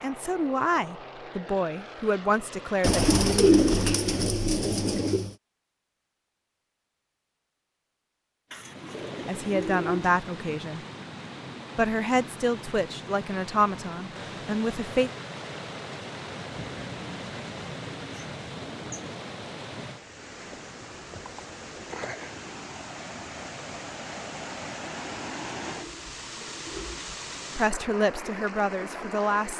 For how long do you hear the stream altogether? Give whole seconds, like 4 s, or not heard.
21 s.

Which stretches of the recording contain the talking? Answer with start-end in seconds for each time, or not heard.
0.0-3.6, 9.2-10.8, 11.8-15.1, 27.6-29.5.